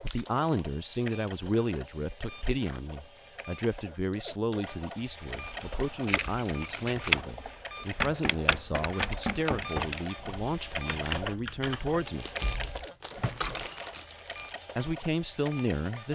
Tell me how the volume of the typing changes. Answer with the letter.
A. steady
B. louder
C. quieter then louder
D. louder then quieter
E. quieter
E.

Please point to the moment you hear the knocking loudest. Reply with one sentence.
The volume of the knocking peaks at 9 seconds.